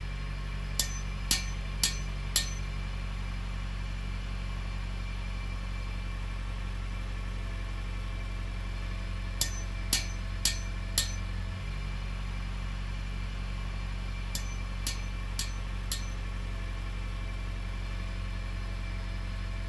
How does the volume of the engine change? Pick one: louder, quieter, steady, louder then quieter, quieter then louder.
steady.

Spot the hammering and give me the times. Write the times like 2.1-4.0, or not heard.
0.8-2.6, 9.4-11.2, 14.3-16.1.